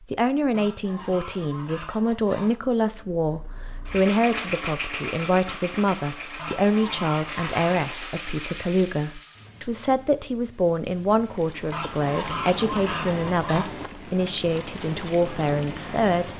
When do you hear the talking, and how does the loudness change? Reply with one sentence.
You can hear the talking from 0.1 to 16.3 s, at a steady volume.